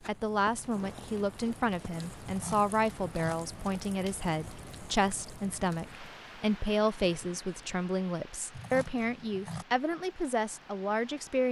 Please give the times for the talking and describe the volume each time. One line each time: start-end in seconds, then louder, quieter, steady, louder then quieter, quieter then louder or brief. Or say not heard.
0.1-11.4 steady.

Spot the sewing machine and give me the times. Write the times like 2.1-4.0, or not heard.
not heard.